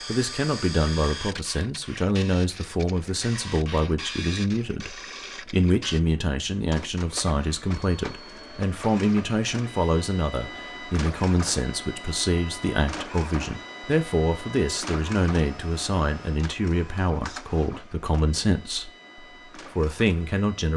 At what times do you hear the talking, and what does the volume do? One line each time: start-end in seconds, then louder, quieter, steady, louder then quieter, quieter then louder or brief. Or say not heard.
0.1-20.7 steady.